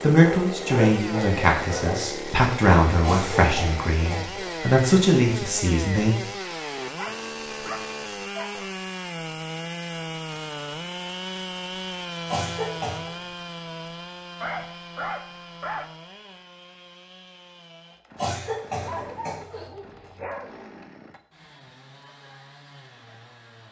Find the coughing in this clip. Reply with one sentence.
You can hear the coughing from 3.0 to 4.5 s, from 12.2 to 13.2 s and from 18.1 to 19.7 s.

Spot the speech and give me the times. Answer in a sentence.
You can hear the speech from 0.0 to 6.2 s.